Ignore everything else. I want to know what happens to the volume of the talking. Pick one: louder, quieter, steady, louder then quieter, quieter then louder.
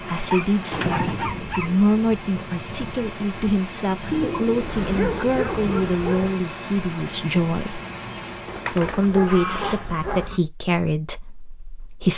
steady.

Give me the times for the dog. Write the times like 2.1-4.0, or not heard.
0.3-1.7, 4.7-6.3, 9.0-10.4.